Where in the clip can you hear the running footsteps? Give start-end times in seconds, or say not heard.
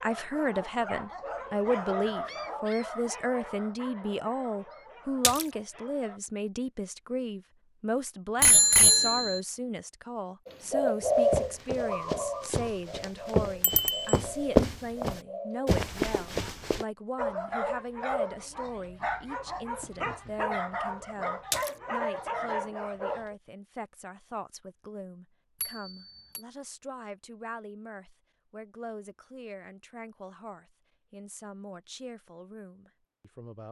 11.0-16.9.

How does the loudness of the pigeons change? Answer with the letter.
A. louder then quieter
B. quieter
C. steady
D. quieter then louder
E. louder
B.